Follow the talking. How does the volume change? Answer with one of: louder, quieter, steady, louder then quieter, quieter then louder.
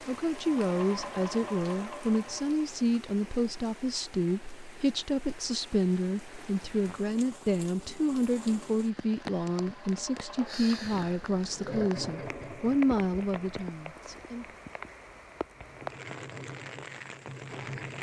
steady.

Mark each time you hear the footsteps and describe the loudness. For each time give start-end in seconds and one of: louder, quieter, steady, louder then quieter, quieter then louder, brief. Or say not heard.
not heard.